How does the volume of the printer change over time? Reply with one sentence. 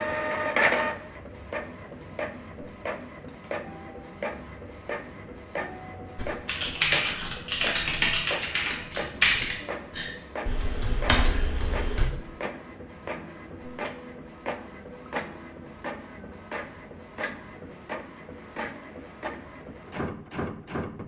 The volume of the printer goes down.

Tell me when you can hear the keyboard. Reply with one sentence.
You can hear the keyboard from 6.2 to 12.1 s.